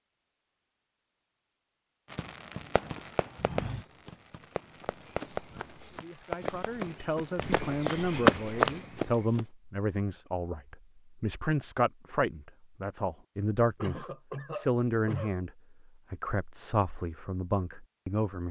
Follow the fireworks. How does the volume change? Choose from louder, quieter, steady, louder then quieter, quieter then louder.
quieter.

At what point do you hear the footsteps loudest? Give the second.
8 s.